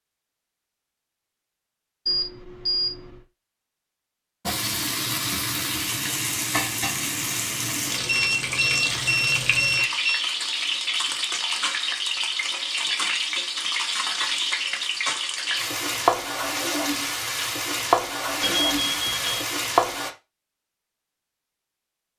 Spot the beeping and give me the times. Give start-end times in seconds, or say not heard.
2.0-3.0, 8.1-10.2, 18.4-19.4.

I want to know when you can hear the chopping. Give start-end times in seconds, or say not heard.
not heard.